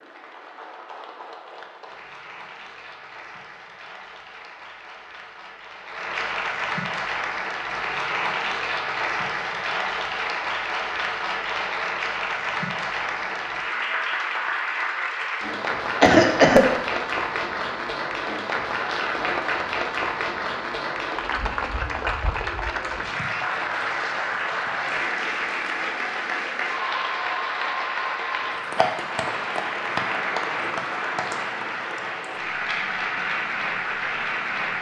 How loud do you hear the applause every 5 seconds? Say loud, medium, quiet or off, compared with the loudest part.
quiet, loud, loud, loud, loud, loud, loud.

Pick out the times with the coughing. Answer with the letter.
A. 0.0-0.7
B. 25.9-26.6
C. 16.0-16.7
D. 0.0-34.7
C.